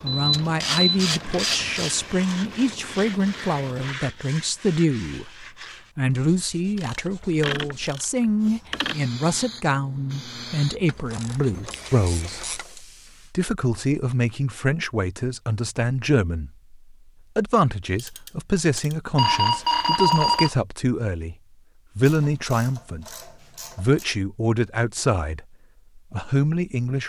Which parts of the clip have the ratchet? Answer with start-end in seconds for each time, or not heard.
0.3-1.9, 6.8-9.0, 10.8-12.8, 17.9-18.9, 22.1-24.1.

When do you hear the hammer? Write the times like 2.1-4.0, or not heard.
not heard.